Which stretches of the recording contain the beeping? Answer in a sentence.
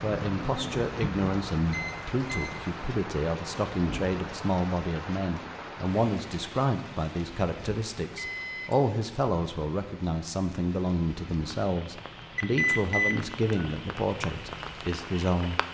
The beeping can be heard from 1.6 to 2.8 s, from 8.2 to 8.8 s and from 12.3 to 13.7 s.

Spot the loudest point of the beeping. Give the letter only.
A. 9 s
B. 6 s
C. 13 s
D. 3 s
C.